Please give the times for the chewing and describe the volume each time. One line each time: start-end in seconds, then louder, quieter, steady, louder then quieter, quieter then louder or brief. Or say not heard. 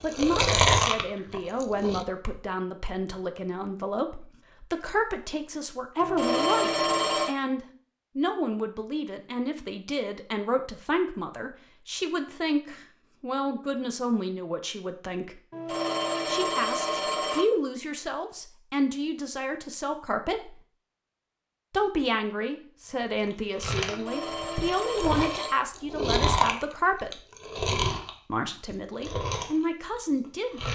0.1-2.0 brief
23.1-30.6 louder then quieter.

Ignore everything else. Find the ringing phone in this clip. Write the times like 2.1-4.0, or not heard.
6.0-7.3, 15.5-17.4, 23.9-25.6.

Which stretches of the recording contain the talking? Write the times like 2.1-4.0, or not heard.
0.0-15.4, 16.2-20.6, 21.7-27.2, 28.3-30.6.